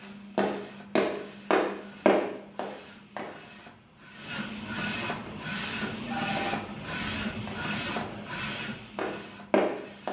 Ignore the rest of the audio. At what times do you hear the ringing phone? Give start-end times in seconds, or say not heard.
6.0-6.8.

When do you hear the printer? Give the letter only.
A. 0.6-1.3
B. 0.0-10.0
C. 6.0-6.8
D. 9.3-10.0
B.